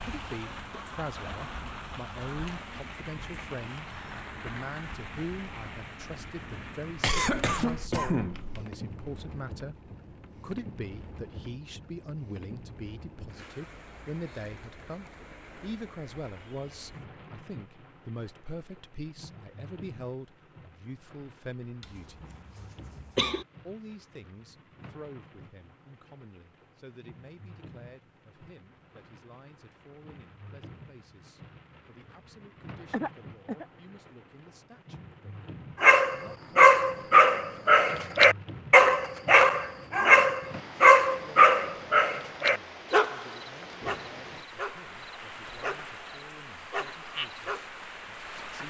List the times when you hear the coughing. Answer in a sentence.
The coughing can be heard from 7.0 to 8.7 s, from 21.8 to 23.4 s and from 32.9 to 33.6 s.